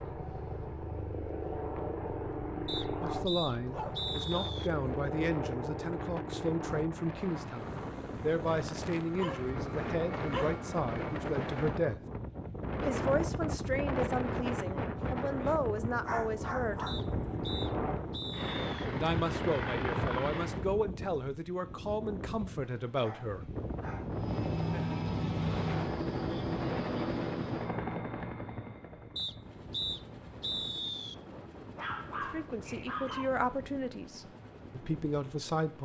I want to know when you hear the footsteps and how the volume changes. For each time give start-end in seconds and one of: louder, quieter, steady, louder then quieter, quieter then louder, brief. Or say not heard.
not heard.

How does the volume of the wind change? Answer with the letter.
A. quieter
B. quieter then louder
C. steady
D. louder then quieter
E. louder
D.